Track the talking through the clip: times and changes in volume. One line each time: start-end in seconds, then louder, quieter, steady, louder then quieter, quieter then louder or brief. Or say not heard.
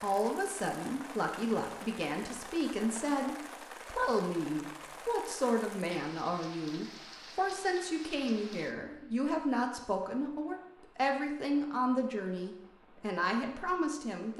0.0-14.3 steady.